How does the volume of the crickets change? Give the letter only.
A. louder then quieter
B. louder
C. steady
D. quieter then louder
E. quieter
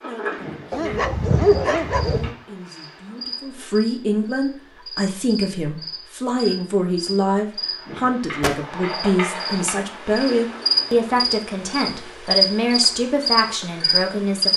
B.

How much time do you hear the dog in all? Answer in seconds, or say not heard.
2 s.